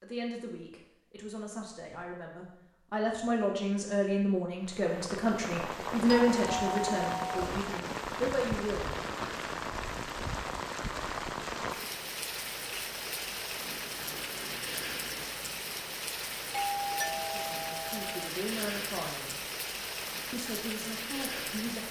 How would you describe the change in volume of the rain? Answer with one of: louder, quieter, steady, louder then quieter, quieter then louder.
steady.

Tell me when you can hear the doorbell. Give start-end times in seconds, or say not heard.
6.0-7.5, 16.5-18.3.